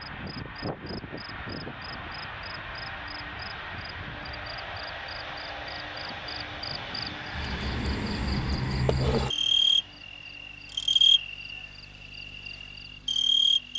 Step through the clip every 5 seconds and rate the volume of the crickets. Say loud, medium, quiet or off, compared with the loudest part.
quiet, loud, loud.